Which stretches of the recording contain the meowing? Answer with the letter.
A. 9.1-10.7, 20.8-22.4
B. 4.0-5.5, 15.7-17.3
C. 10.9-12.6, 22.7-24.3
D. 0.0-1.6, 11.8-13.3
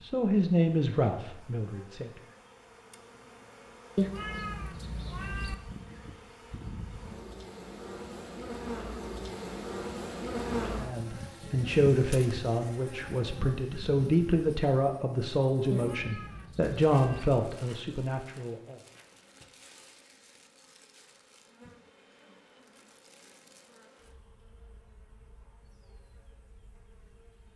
B.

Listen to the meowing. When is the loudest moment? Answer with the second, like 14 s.
4 s.